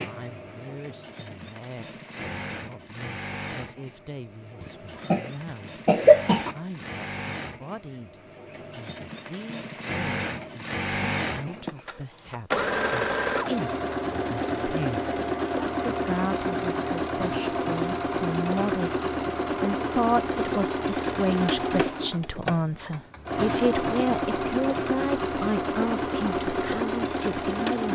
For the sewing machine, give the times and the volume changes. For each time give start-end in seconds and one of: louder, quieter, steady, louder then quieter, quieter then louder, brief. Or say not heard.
0.0-27.9 louder.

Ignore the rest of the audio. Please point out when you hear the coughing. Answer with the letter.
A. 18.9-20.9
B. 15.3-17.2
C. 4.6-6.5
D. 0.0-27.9
C.